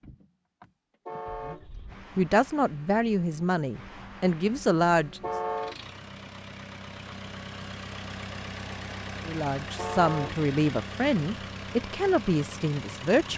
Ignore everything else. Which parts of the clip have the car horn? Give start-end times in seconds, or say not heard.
1.1-1.6, 5.2-5.8, 9.8-10.4.